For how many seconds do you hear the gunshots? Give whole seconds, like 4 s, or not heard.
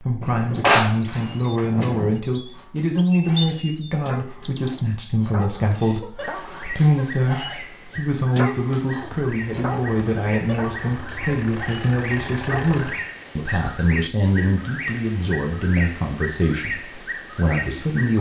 2 s.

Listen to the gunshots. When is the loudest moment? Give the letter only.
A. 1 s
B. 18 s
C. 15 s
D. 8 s
A.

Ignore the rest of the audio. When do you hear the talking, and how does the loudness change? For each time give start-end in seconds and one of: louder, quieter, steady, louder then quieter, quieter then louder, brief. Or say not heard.
0.0-18.1 steady.